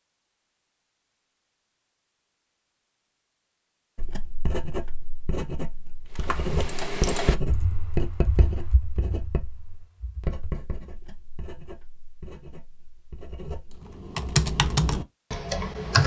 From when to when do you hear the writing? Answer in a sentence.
You can hear the writing from 4.0 to 13.8 s.